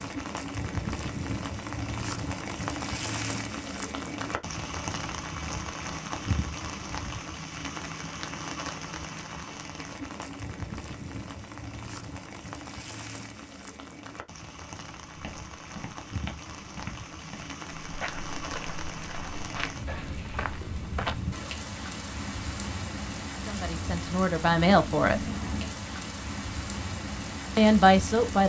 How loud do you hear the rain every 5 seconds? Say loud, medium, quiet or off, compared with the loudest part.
loud, loud, medium, medium, loud, loud.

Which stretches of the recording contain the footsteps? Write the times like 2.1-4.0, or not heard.
15.1-21.2.